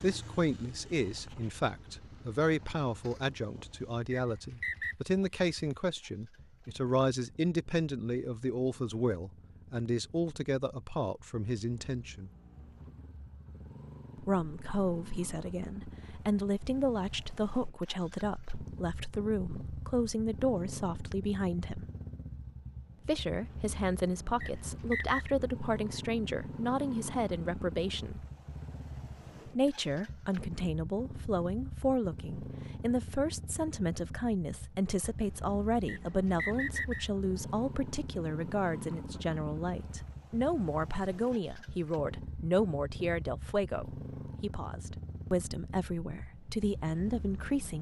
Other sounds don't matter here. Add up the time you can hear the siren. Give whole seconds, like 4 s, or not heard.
not heard.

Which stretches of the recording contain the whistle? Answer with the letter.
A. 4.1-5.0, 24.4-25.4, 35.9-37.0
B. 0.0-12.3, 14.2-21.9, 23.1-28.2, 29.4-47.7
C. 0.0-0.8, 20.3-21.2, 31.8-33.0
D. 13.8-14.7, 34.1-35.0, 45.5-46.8
A.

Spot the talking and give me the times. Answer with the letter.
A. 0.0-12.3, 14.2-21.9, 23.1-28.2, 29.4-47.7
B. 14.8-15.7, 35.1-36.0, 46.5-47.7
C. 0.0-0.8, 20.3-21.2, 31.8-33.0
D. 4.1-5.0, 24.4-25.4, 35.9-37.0
A.